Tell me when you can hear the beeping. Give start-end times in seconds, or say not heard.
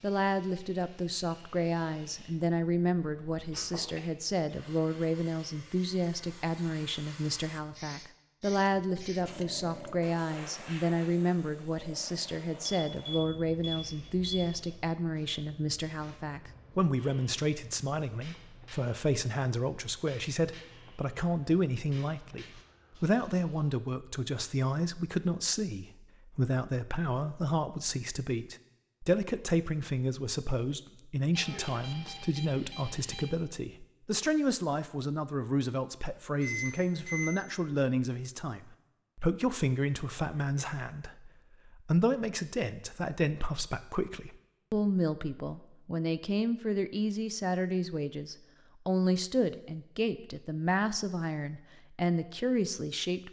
12.9-14.8, 31.3-33.2, 36.4-37.4.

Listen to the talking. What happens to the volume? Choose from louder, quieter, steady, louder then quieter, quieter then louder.
steady.